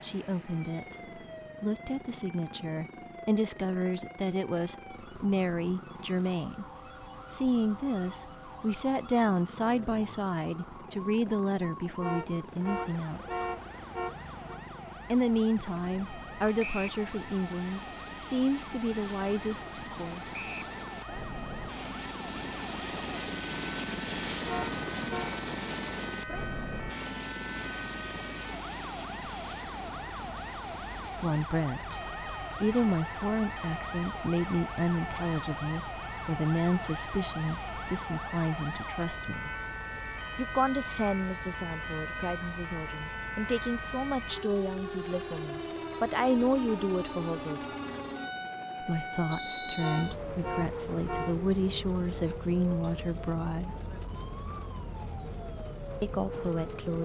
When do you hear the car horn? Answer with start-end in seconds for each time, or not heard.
12.0-14.6, 24.4-25.4, 49.8-51.4.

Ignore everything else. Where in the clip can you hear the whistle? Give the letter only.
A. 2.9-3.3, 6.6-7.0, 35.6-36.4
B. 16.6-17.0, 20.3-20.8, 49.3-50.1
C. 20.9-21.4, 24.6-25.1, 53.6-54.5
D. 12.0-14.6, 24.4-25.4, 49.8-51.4
B.